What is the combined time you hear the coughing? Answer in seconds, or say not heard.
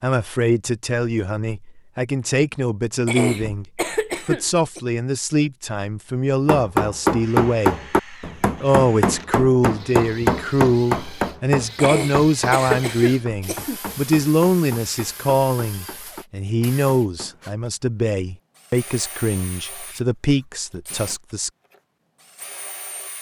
4 s.